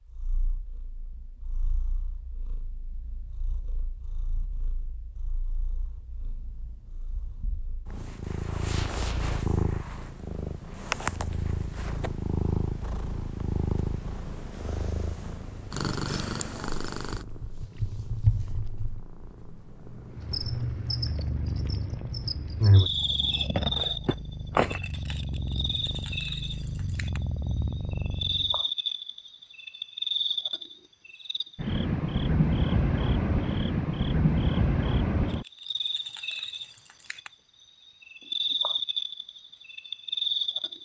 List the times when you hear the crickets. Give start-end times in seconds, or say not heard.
20.1-40.8.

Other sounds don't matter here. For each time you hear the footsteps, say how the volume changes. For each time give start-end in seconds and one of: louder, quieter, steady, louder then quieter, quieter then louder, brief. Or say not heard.
not heard.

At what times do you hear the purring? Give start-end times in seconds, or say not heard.
0.1-28.6.